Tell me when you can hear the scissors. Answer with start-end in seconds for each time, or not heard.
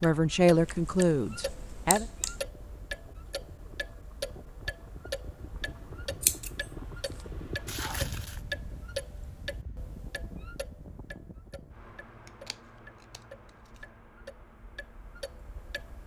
0.6-2.4, 6.2-7.2, 12.2-13.8.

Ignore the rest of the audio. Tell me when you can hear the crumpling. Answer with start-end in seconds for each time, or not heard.
7.7-8.4.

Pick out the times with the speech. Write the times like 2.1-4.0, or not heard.
0.0-2.0.